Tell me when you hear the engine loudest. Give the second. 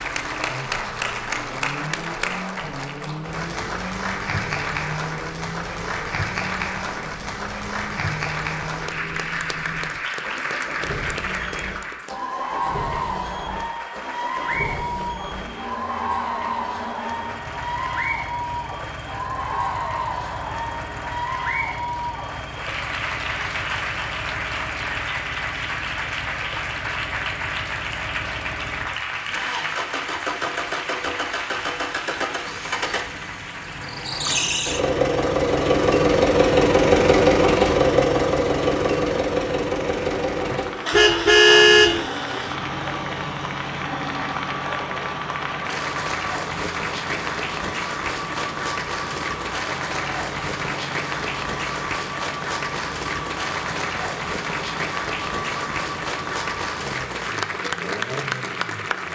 37 s.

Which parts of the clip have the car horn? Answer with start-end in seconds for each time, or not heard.
40.5-42.0.